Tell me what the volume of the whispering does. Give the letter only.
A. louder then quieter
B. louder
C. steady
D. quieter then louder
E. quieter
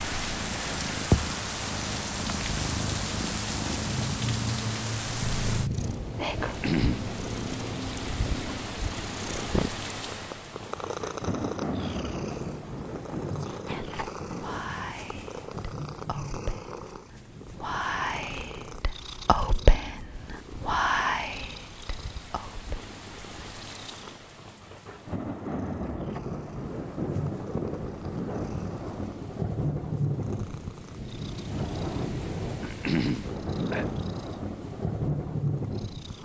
B.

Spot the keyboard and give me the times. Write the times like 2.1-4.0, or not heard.
not heard.